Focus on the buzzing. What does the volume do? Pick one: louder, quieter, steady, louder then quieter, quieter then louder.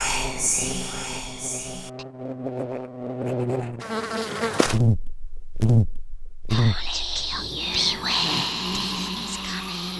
louder then quieter.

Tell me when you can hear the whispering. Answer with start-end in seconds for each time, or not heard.
0.0-2.0, 6.5-9.9.